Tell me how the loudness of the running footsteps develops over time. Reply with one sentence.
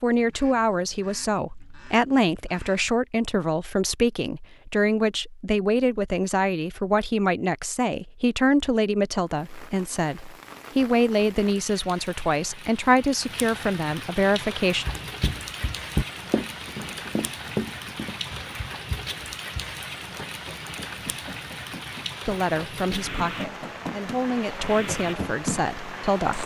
The volume of the running footsteps goes down, then up.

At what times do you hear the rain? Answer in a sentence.
The rain can be heard from 9.2 to 26.4 s.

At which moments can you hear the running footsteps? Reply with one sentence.
The running footsteps can be heard from 14.8 to 25.6 s.